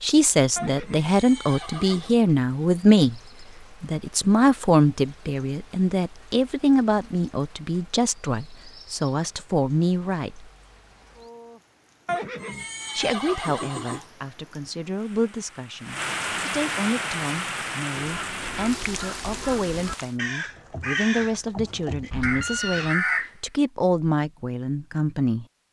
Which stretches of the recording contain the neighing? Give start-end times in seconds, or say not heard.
0.6-2.1, 12.1-14.1, 22.1-22.9.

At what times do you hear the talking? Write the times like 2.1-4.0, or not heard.
0.0-3.2, 3.8-10.5, 12.9-25.4.